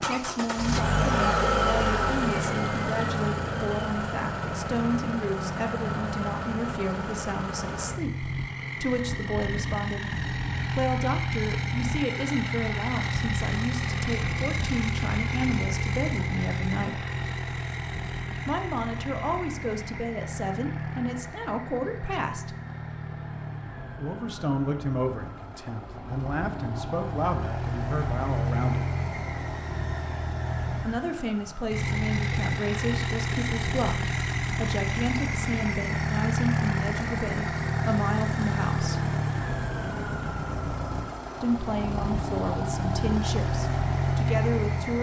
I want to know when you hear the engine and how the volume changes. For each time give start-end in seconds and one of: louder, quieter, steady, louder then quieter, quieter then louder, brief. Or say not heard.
0.0-44.9 quieter then louder.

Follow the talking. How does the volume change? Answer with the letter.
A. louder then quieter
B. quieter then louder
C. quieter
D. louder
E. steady
E.